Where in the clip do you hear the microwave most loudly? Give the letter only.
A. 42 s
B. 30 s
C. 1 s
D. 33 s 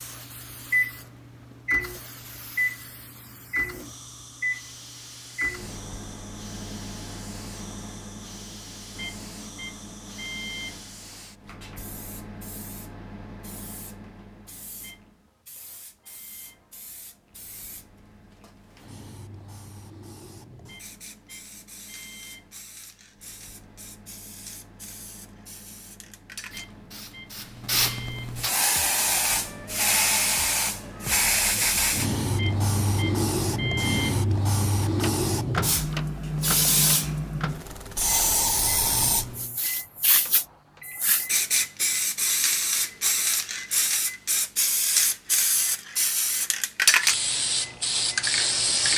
C.